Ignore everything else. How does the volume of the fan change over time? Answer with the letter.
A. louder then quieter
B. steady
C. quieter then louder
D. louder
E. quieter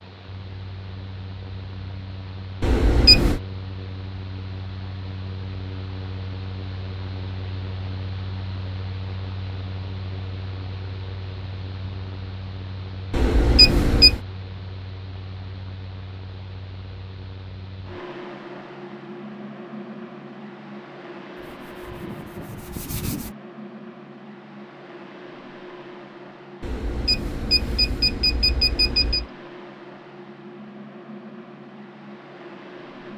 B.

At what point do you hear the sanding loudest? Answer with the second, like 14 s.
23 s.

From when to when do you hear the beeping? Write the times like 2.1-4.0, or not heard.
2.6-3.4, 13.1-14.2, 26.6-29.2.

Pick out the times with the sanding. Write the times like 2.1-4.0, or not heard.
21.4-23.4.